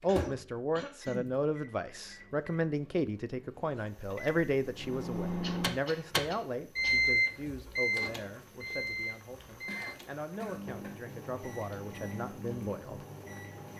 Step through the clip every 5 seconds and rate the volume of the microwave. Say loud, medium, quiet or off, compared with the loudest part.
quiet, loud, quiet.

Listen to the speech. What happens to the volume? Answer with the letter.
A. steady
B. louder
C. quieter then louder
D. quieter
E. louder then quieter
D.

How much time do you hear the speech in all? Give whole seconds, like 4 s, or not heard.
13 s.